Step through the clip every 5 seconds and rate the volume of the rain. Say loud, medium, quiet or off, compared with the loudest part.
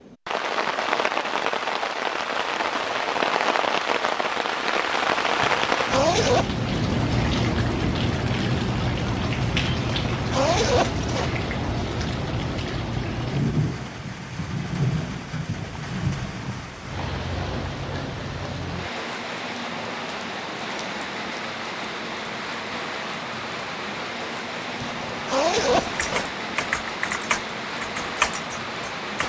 loud, loud, loud, medium, medium, medium.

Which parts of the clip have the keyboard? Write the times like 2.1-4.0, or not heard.
25.6-29.2.